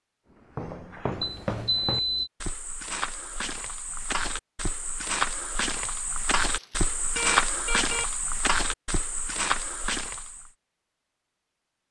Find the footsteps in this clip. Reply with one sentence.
You can hear the footsteps from 0.5 to 10.5 s.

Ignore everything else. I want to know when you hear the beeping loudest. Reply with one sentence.
The loudest moment of the beeping is at 2 seconds.